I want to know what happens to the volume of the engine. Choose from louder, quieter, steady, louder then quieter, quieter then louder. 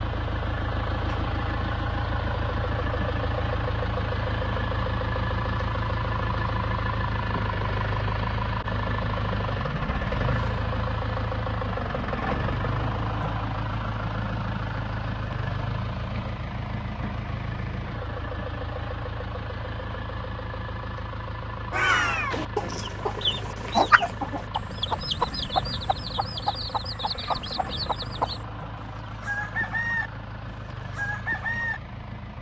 quieter.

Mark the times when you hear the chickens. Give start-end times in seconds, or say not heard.
22.3-31.8.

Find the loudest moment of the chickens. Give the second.
24 s.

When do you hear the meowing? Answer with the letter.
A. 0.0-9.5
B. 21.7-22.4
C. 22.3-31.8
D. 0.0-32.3
B.